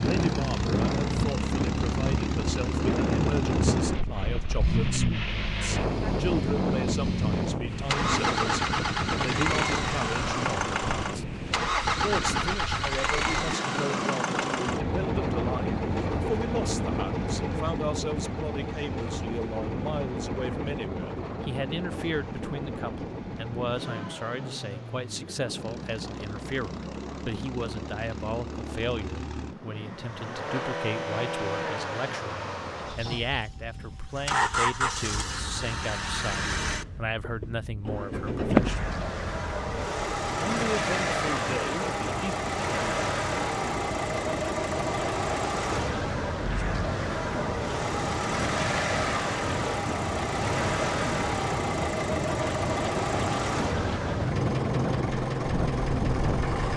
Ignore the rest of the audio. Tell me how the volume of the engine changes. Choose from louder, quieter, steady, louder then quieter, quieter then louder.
quieter then louder.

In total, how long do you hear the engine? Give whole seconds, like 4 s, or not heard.
57 s.